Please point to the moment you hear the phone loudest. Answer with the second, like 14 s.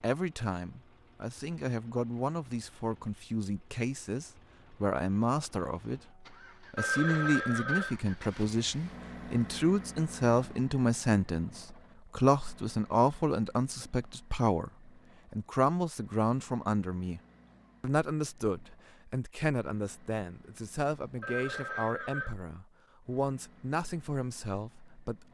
7 s.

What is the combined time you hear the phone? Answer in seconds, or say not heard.
2 s.